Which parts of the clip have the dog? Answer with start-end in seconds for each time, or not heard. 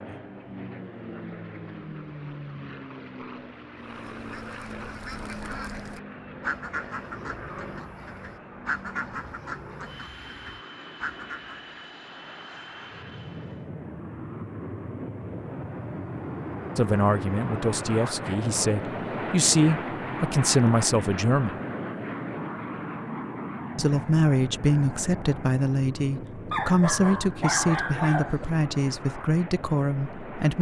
26.5-28.4.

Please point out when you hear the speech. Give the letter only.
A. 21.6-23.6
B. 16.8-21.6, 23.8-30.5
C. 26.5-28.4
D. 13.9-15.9
B.